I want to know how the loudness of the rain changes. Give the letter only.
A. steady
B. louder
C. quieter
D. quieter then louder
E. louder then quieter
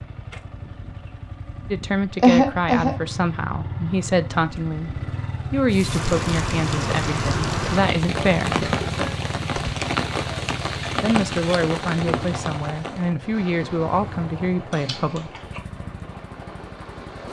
C.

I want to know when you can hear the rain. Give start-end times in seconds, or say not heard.
5.7-17.2.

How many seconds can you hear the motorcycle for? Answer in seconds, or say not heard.
17 s.